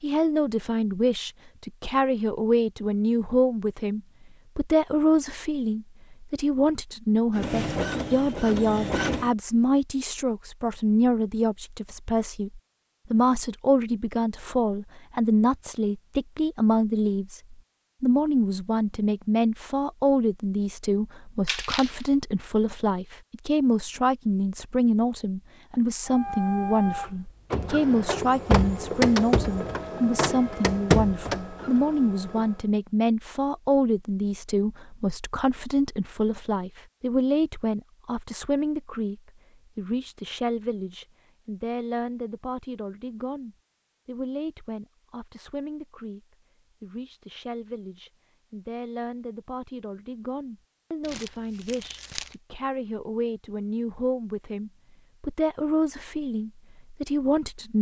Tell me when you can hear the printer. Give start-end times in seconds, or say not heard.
7.3-9.3, 26.1-32.6.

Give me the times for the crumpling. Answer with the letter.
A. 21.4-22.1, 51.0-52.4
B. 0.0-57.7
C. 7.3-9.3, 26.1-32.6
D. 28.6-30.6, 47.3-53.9
A.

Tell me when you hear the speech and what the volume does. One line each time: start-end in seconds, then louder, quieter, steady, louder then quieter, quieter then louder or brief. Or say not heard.
0.0-57.7 quieter.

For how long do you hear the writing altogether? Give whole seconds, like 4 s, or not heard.
not heard.